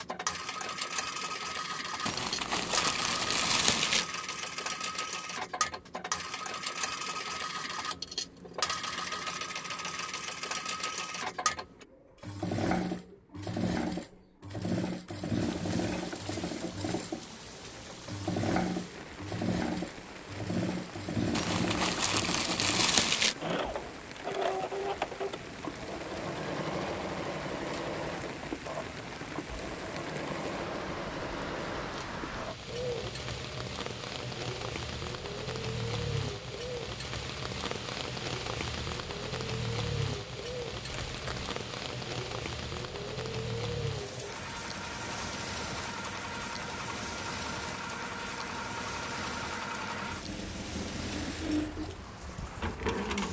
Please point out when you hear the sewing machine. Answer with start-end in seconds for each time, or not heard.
0.0-53.2.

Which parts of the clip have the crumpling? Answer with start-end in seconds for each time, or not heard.
2.0-4.0, 21.3-23.4, 41.1-41.5.